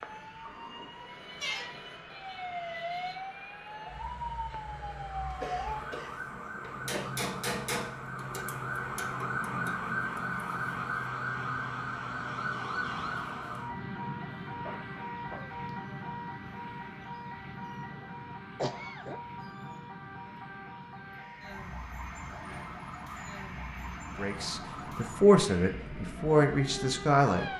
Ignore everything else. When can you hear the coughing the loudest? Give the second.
19 s.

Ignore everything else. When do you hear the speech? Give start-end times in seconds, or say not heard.
24.1-27.5.